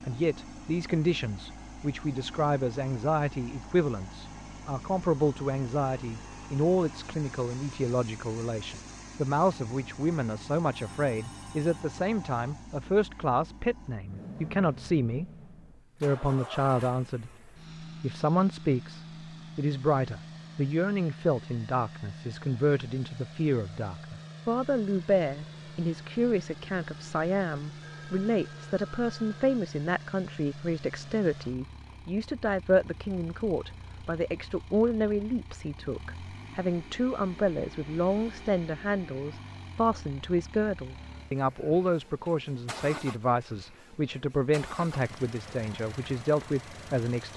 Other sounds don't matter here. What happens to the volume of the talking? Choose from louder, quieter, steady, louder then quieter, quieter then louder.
steady.